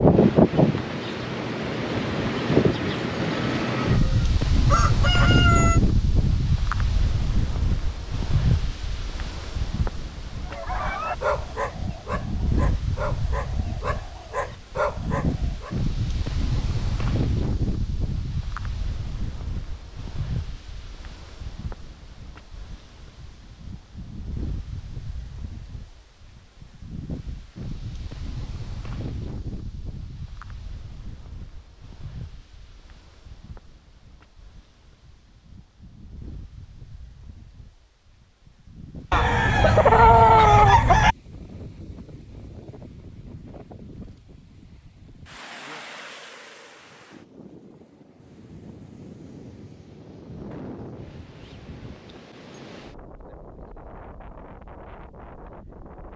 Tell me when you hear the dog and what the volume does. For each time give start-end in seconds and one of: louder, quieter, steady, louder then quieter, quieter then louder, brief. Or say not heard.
10.4-15.8 quieter then louder.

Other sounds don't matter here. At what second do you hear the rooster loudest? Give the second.
40 s.